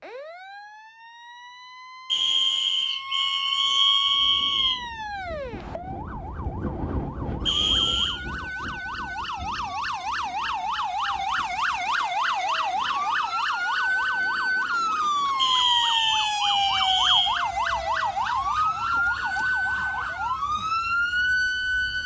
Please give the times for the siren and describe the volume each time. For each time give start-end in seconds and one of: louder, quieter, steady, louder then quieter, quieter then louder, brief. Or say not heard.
0.0-22.0 louder.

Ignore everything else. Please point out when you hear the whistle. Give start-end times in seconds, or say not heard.
2.0-4.8, 7.5-8.2, 15.3-17.4.